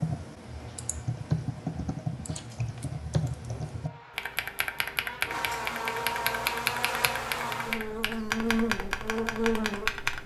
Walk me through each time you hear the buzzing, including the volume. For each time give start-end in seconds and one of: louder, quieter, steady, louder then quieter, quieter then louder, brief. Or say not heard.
3.4-10.2 louder.